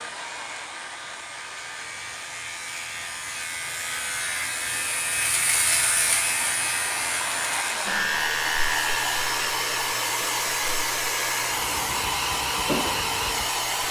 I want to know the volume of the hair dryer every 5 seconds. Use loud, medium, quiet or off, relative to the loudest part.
quiet, loud, loud.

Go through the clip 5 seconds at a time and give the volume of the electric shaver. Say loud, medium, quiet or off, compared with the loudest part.
medium, loud, medium.